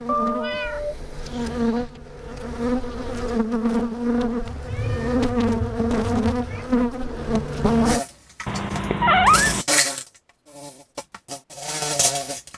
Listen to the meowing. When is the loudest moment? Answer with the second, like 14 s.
9 s.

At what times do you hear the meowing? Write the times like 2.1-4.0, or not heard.
0.1-2.0, 4.5-6.7, 8.4-9.7.